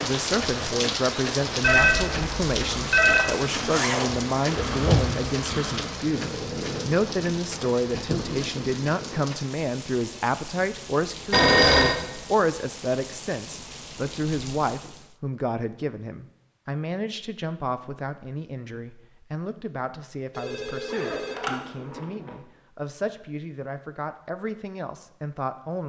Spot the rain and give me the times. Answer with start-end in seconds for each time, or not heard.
0.0-15.2.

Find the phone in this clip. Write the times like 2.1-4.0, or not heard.
1.6-3.3, 11.3-11.9, 20.4-21.5.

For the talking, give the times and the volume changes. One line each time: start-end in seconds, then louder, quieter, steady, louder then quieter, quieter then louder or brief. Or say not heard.
0.0-25.8 quieter.